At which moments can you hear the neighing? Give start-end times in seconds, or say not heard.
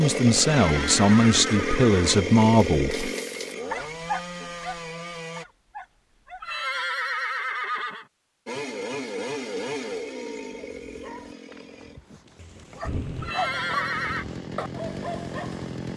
0.4-2.2, 6.4-8.1, 13.2-14.2.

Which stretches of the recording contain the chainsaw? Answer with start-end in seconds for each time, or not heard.
0.0-5.5, 8.4-15.9.